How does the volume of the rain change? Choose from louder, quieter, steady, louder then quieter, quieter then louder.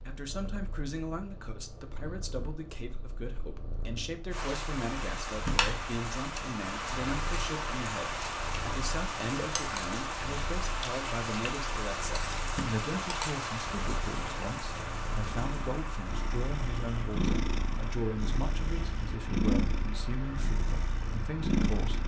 quieter.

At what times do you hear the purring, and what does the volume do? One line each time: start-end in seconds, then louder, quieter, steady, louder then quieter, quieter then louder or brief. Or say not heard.
0.0-22.0 louder.